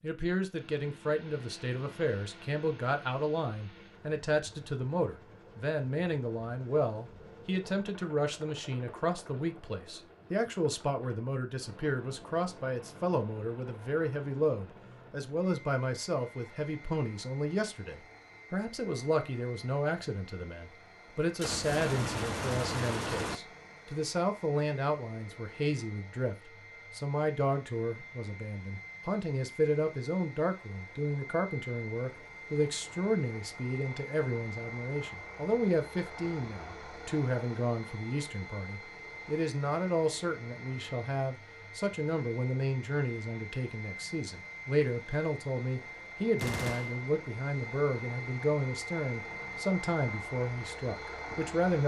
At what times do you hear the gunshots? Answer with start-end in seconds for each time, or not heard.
21.4-23.4, 46.4-47.0.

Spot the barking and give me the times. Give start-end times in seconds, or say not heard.
not heard.